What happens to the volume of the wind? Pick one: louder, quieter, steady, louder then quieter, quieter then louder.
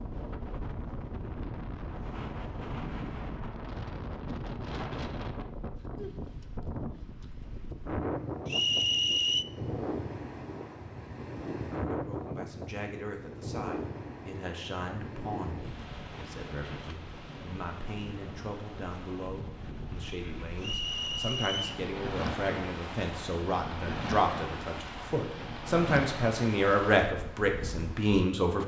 steady.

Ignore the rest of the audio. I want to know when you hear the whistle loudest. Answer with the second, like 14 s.
9 s.